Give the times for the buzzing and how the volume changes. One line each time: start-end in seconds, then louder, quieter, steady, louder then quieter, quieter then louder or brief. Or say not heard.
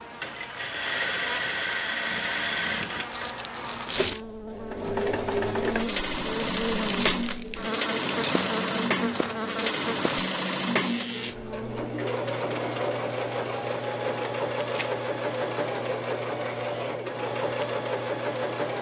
0.0-11.8 louder.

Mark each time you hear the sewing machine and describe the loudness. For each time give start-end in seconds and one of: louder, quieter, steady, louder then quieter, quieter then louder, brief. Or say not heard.
0.0-18.7 steady.